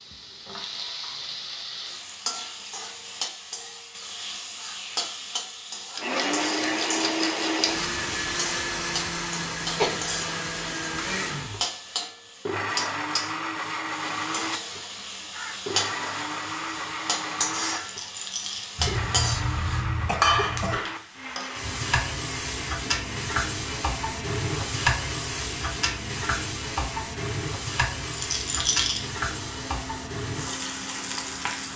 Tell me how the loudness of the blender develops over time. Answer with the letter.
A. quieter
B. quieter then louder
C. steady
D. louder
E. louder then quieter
A.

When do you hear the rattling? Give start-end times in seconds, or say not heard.
6.0-7.9, 17.8-18.8, 28.1-29.1.